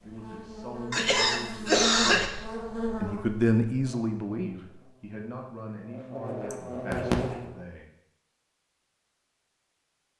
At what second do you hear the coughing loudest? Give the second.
2 s.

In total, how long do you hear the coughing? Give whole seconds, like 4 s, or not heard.
2 s.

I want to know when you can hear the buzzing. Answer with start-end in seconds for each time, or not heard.
0.0-7.7.